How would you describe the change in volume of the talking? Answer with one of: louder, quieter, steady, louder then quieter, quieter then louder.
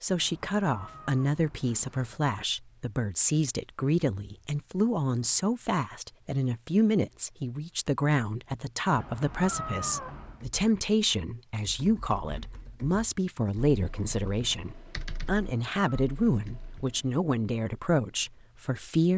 steady.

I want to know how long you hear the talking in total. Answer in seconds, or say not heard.
19 s.